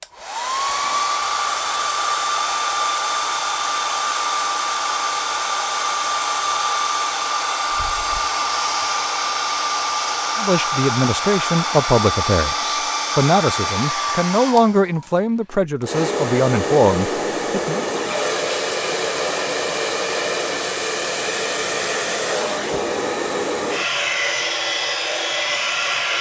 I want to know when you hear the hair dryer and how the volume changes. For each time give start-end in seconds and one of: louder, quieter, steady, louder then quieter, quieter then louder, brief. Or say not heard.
0.0-26.1 steady.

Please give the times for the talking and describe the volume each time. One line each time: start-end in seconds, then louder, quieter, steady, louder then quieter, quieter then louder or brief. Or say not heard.
10.3-17.9 steady.